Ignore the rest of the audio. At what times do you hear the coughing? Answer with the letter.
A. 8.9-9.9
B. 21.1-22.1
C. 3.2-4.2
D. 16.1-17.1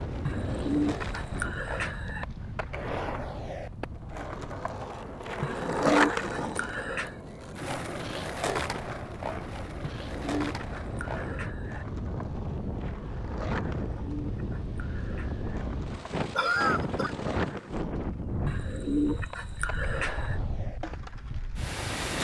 D.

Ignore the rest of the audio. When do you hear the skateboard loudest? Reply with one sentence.
The volume of the skateboard peaks at 6 seconds.